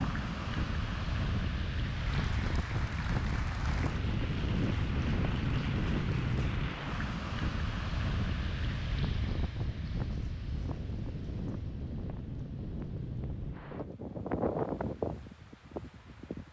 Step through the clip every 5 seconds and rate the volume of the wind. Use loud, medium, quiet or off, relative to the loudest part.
loud, loud, loud, medium.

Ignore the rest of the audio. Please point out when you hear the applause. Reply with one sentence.
You can hear the applause from 1.8 to 7.1 s.